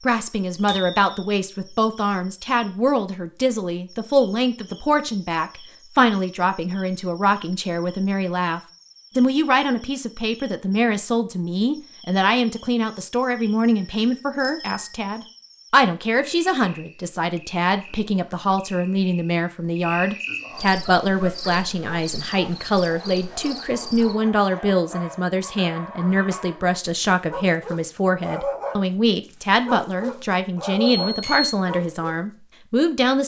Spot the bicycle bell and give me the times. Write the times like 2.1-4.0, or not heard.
0.7-1.1, 14.4-14.9, 31.0-31.5.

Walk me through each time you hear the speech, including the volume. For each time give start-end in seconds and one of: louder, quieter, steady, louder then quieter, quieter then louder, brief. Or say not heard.
0.1-33.2 steady.